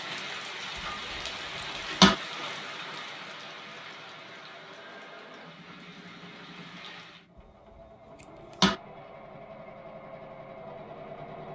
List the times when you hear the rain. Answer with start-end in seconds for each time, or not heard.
0.0-7.2.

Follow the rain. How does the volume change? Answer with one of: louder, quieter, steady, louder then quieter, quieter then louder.
quieter.